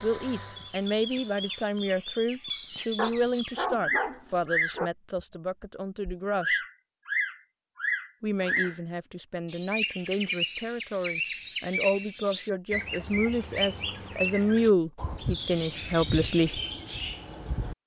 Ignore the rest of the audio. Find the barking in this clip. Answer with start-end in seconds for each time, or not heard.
3.0-4.9.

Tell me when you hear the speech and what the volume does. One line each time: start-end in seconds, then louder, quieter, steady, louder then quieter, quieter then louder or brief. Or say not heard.
0.0-6.6 quieter
8.2-16.6 louder.